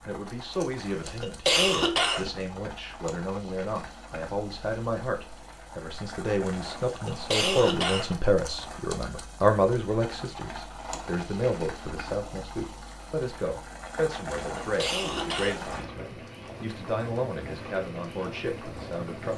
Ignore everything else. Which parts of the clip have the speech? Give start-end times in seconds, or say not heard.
0.0-19.3.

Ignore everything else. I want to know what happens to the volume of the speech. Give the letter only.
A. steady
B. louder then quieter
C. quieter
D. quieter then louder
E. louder
B.